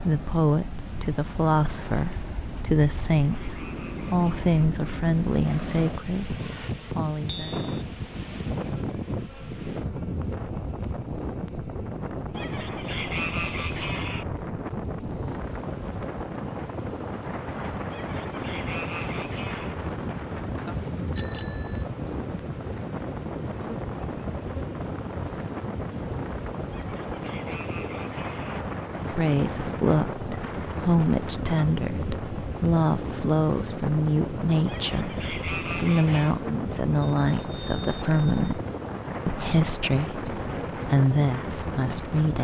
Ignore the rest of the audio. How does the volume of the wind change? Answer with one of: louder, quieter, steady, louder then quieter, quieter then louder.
steady.